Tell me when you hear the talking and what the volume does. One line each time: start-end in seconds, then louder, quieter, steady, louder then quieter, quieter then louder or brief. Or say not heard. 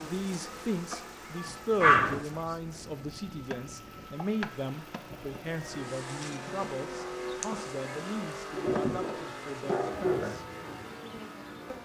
0.0-10.4 quieter.